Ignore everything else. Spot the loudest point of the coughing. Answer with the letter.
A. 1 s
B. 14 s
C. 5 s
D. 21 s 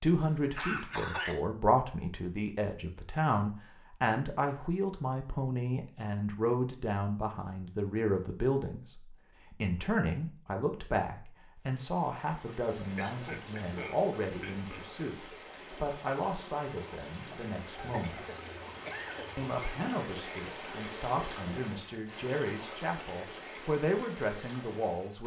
A.